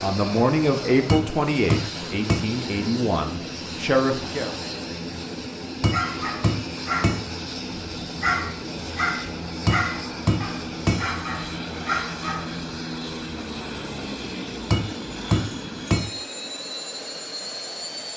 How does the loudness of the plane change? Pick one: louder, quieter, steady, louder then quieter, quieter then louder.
steady.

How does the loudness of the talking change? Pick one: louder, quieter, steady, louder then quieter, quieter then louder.
quieter then louder.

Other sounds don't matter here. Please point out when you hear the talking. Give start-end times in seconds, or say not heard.
0.0-4.5.